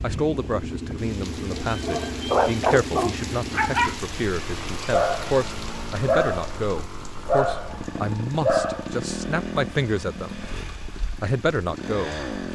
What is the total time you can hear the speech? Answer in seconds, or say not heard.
11 s.